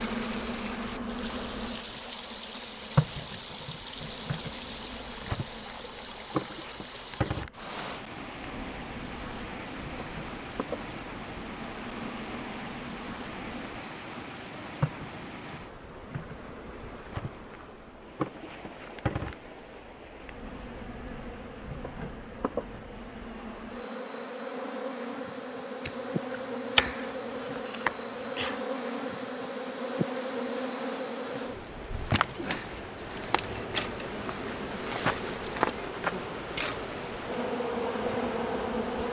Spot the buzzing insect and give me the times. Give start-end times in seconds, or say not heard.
0.0-39.0.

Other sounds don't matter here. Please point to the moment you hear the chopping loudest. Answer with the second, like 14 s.
27 s.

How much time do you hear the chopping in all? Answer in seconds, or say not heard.
3 s.